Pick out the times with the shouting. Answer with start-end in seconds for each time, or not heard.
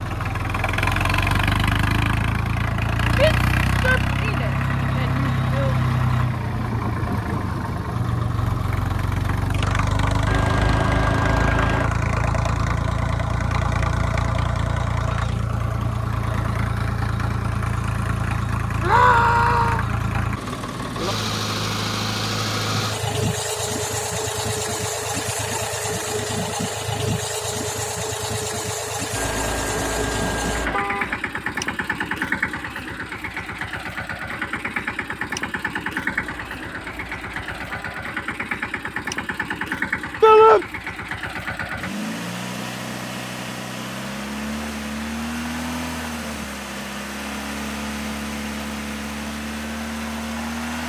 3.1-5.8, 18.8-19.9, 40.2-40.6.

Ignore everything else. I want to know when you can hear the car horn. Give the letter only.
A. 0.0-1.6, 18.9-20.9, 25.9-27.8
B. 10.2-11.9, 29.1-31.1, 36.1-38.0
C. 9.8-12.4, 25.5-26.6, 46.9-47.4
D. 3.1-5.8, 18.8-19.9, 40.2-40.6
B.